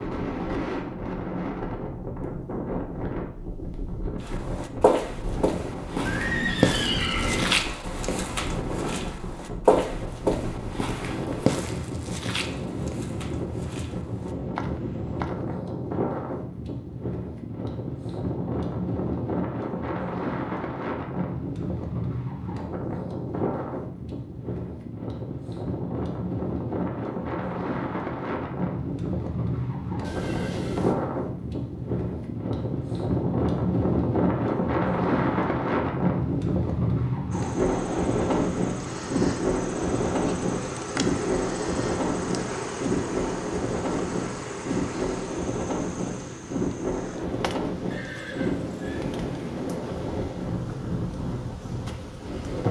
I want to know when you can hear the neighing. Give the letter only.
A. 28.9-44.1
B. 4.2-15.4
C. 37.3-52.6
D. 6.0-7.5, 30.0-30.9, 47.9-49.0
D.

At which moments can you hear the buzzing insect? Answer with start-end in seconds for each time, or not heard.
37.3-52.6.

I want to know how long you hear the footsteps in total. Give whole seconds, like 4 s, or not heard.
11 s.